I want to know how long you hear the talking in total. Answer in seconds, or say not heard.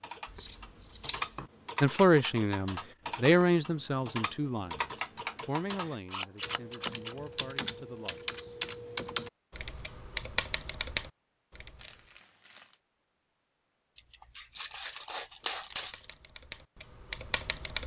7 s.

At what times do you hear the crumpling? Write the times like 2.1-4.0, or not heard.
11.8-12.8.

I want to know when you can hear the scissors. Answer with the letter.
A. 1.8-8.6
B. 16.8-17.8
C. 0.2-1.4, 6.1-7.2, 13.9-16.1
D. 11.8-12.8
C.